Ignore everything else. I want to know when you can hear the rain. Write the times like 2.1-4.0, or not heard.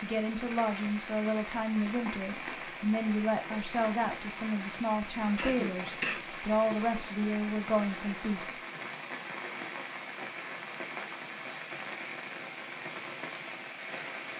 0.0-14.3.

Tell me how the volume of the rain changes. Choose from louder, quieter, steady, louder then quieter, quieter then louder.
steady.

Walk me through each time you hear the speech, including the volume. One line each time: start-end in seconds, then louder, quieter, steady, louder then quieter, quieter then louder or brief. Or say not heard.
0.0-8.6 steady.